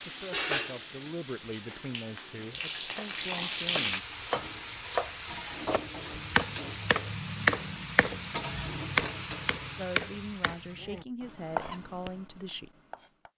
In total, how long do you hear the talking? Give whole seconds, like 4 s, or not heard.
7 s.